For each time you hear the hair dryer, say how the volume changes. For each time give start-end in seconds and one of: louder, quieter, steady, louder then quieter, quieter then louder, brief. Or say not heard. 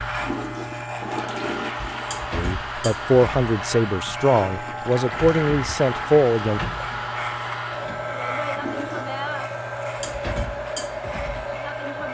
0.0-12.0 steady.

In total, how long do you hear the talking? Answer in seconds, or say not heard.
4 s.